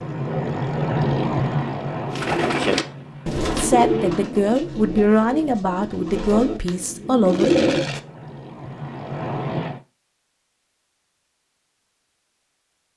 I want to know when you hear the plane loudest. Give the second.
1 s.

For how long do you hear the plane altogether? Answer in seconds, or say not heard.
7 s.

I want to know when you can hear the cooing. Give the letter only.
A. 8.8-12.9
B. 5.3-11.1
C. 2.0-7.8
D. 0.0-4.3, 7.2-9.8
C.